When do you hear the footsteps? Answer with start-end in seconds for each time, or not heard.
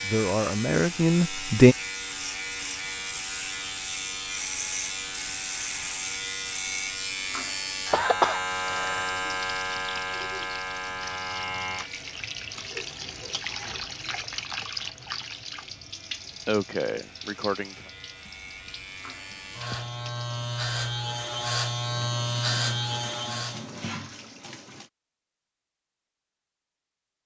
not heard.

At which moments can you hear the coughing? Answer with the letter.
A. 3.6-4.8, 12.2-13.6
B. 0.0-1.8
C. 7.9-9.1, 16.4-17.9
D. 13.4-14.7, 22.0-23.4
C.